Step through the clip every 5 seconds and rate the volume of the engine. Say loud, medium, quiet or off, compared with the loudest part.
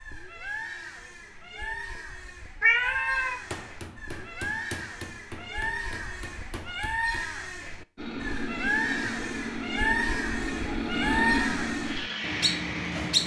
off, loud, loud.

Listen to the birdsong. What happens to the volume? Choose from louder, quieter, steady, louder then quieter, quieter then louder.
louder.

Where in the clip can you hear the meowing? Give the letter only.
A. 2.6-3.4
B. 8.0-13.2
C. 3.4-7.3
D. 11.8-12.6
A.